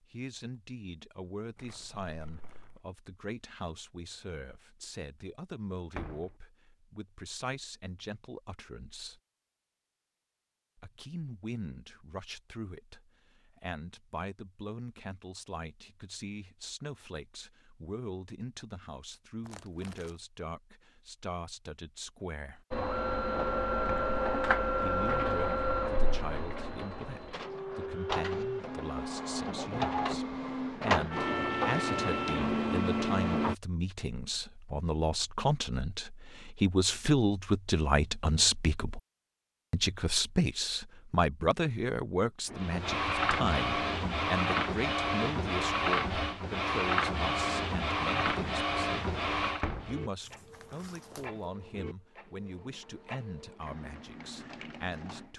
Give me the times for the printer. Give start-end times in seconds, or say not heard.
22.7-33.5, 42.5-55.3.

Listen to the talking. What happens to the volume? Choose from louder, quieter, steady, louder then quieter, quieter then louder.
louder then quieter.